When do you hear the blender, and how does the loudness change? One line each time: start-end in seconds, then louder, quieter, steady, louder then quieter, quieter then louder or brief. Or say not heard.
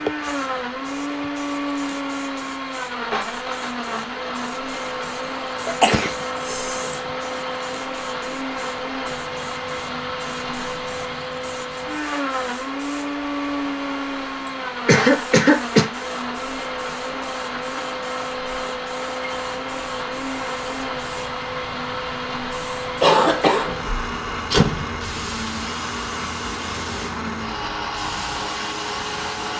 0.0-29.5 steady.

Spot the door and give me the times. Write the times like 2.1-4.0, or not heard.
23.9-25.1.